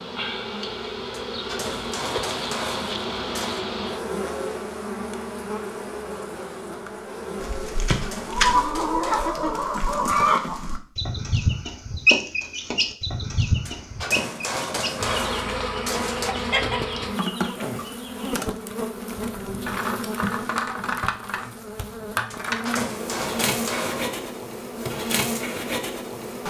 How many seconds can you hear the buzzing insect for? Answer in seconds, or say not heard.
20 s.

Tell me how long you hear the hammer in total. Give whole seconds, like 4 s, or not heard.
9 s.